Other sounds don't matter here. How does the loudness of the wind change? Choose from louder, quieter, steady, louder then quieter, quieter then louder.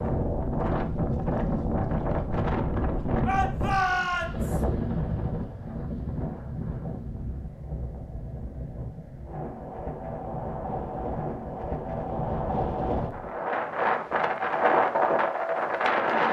quieter then louder.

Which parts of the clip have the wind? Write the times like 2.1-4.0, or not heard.
0.0-16.2.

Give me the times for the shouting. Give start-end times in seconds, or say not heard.
3.2-4.6.